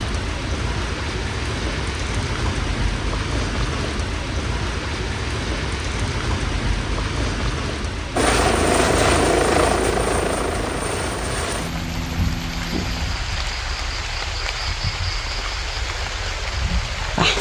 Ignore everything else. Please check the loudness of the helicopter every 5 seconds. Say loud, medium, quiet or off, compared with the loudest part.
off, loud, medium, off.